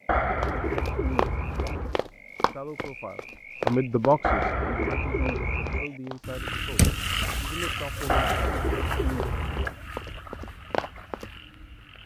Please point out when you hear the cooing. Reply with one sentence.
You can hear the cooing from 0.1 to 2.0 s, from 4.2 to 5.8 s and from 8.1 to 9.8 s.